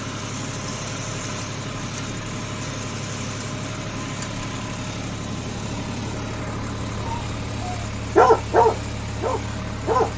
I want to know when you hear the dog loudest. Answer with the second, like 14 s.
8 s.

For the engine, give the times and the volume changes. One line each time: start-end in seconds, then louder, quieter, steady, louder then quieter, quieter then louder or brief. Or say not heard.
0.0-10.1 steady.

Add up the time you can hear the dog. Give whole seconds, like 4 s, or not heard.
3 s.